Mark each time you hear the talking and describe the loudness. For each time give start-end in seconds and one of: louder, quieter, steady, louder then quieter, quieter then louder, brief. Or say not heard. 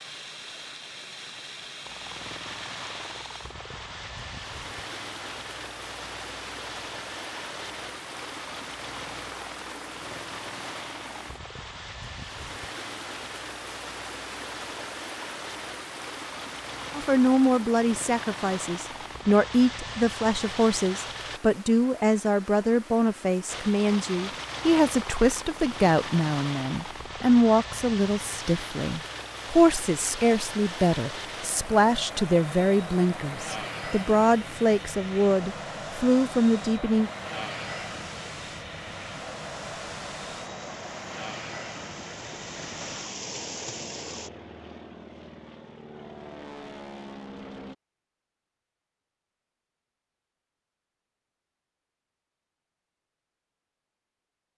16.9-37.1 steady.